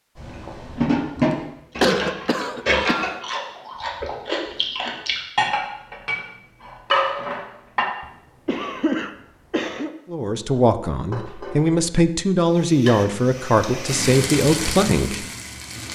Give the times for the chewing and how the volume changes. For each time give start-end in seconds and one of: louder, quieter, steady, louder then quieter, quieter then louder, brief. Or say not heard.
0.1-5.2 louder.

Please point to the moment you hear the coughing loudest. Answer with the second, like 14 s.
2 s.